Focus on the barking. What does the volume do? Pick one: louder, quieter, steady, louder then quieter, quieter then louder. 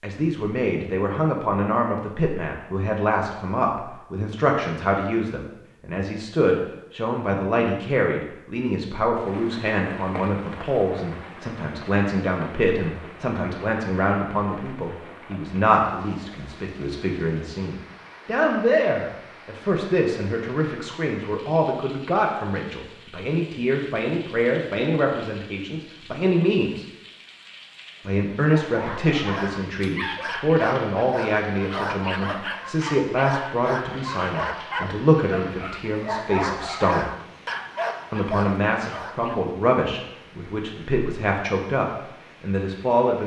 steady.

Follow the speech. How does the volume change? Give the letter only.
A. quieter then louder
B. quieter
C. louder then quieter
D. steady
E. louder
D.